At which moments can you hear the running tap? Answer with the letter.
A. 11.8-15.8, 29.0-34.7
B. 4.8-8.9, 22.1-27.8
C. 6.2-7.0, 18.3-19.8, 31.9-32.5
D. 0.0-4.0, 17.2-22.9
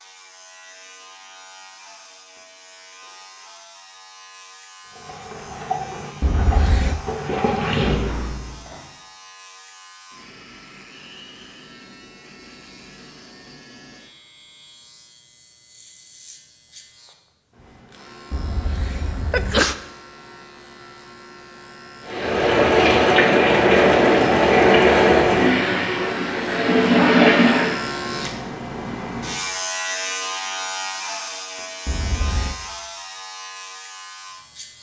B.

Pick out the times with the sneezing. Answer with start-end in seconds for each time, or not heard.
6.2-7.0, 18.3-19.8, 31.9-32.5.